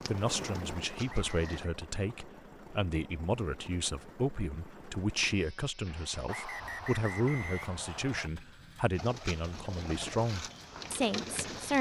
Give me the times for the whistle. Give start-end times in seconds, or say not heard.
1.1-1.8, 6.2-8.3.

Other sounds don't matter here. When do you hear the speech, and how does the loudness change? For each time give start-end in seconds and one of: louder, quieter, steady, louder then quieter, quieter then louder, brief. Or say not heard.
0.0-11.7 steady.